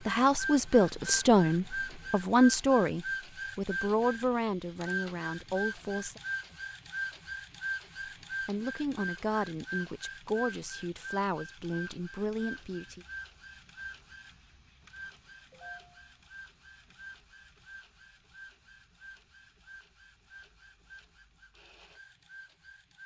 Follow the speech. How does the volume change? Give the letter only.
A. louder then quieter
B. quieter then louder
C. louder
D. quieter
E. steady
D.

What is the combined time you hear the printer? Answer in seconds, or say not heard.
23 s.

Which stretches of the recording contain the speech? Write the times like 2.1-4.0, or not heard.
0.1-6.2, 8.1-13.1.